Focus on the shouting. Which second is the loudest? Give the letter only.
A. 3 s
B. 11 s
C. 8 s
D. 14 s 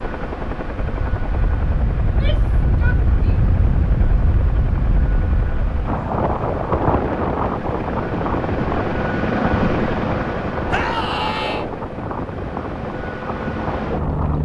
B.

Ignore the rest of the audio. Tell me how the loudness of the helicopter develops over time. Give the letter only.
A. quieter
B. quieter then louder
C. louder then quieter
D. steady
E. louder
C.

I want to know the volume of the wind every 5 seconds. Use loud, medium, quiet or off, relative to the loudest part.
loud, loud, medium.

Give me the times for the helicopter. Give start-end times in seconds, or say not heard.
0.0-14.3.